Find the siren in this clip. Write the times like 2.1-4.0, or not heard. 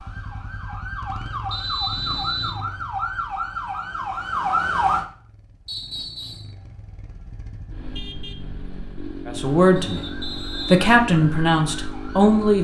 0.0-5.0, 9.4-12.5.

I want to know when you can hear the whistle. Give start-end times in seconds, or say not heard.
1.5-2.6, 5.7-6.5, 9.8-10.8.